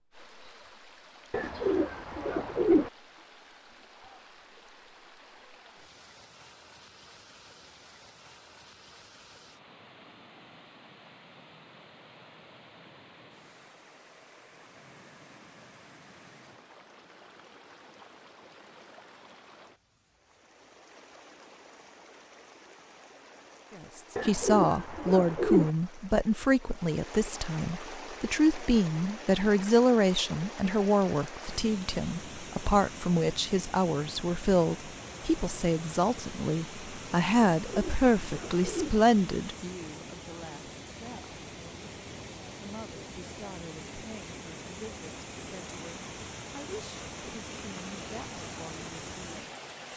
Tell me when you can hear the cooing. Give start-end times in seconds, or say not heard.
1.3-2.9, 24.1-25.7, 37.6-39.0.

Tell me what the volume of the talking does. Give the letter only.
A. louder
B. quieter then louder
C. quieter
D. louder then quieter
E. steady
C.